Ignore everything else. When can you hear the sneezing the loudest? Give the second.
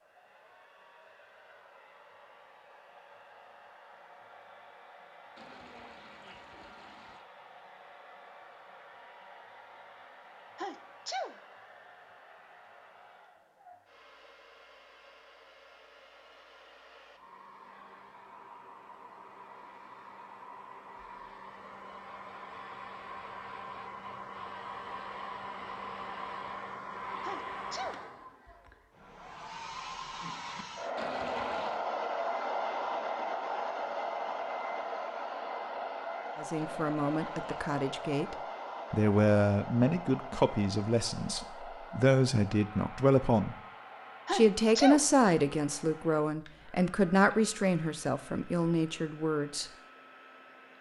45 s.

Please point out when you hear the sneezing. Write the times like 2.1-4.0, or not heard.
10.6-11.4, 27.2-28.1, 44.2-45.1.